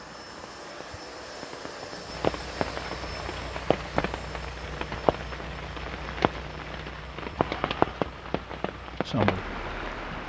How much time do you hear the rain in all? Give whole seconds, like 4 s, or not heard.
10 s.